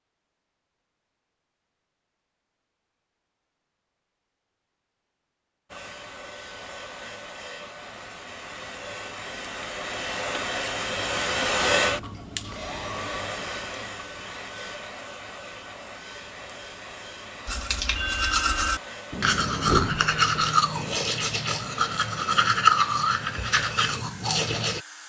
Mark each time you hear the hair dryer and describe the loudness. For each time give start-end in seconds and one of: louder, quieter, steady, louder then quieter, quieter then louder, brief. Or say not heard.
5.7-25.0 louder then quieter.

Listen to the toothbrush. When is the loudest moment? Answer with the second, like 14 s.
23 s.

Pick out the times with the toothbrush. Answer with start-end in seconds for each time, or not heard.
17.4-24.8.